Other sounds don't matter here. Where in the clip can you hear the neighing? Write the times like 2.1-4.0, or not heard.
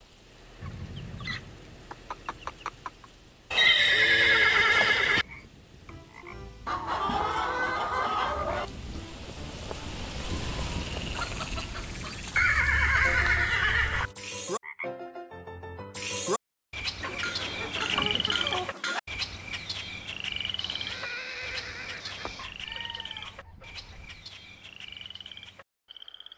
3.5-5.2, 12.3-14.1, 20.6-22.4.